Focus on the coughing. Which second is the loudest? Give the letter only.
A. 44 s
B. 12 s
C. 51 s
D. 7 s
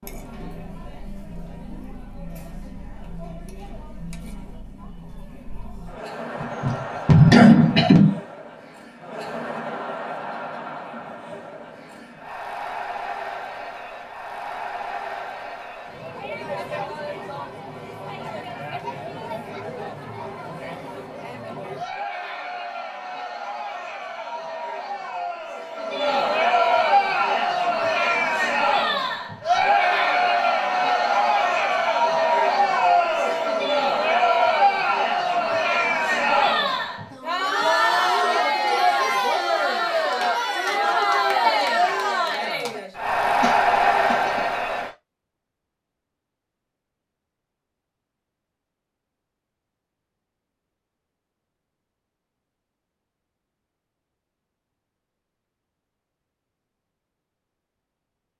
D.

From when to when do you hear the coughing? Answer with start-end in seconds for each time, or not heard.
6.3-8.2, 43.4-44.5.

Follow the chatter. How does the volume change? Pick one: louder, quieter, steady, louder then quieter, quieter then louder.
louder.